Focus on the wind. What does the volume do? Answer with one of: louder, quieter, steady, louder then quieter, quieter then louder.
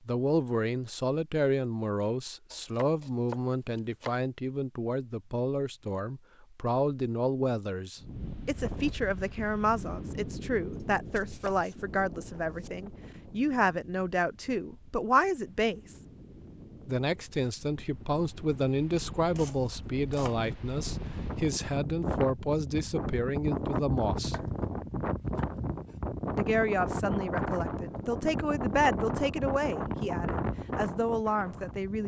quieter then louder.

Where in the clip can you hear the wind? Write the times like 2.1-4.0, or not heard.
8.0-32.0.